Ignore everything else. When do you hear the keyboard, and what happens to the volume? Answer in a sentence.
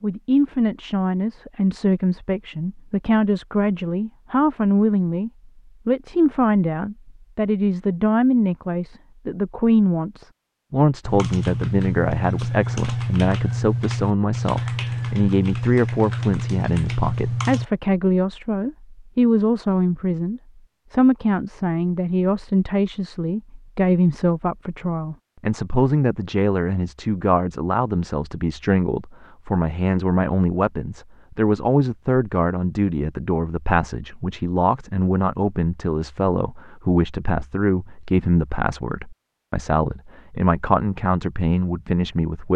You can hear the keyboard from 11.1 to 17.6 s, at a steady volume.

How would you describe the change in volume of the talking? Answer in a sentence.
The loudness of the talking stays about the same.